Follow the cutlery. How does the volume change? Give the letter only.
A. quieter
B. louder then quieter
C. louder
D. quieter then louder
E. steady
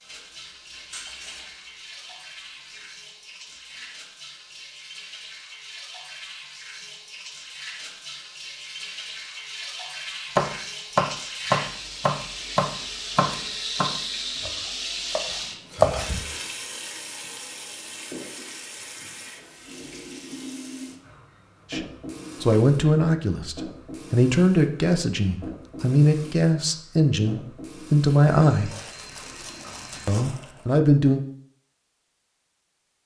A.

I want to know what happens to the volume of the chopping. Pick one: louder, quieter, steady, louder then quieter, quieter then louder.
quieter then louder.